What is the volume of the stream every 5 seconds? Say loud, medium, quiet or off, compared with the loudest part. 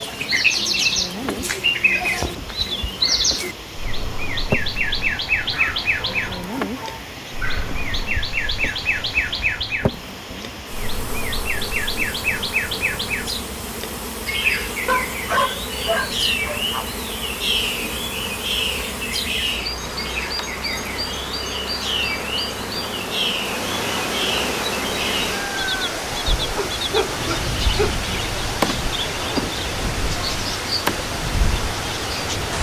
medium, medium, medium, medium, loud, loud, loud.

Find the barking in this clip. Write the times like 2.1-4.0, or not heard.
5.5-7.8, 14.8-16.9, 26.6-28.0.